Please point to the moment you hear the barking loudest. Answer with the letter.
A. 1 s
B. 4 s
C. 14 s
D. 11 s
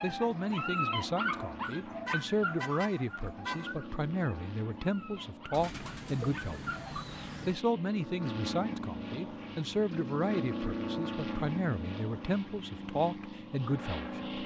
A.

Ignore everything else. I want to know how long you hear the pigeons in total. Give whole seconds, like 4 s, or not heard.
2 s.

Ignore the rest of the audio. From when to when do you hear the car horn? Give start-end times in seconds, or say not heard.
2.0-3.8.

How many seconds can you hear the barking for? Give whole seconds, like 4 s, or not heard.
7 s.